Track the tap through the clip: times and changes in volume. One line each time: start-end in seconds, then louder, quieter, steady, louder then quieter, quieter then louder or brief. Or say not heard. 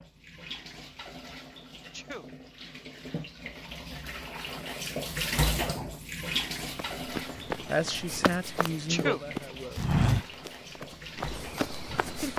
0.0-12.3 louder then quieter.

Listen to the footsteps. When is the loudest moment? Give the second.
10 s.